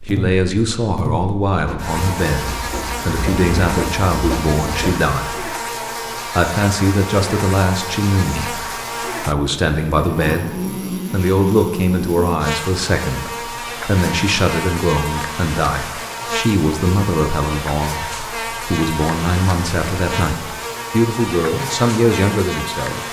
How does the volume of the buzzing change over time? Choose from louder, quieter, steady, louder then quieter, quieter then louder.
steady.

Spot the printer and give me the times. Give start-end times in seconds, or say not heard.
1.6-5.0.